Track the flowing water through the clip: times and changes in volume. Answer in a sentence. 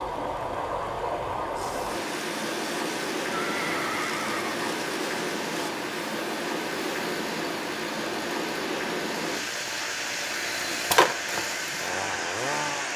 The flowing water can be heard from 0.0 to 12.9 s, at a steady volume.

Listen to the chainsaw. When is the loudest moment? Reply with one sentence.
The volume of the chainsaw peaks at 11 seconds.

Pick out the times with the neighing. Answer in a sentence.
You can hear the neighing from 3.3 to 4.7 s.